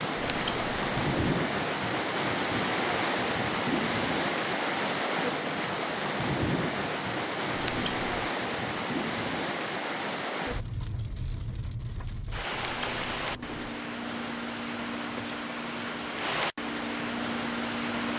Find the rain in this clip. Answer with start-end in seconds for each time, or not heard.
0.0-18.1.